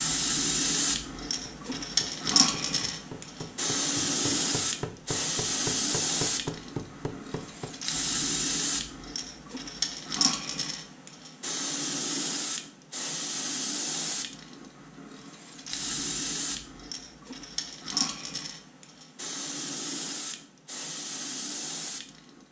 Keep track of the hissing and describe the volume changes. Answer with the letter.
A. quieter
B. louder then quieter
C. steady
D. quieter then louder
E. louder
A.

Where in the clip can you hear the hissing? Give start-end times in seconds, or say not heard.
0.0-22.4.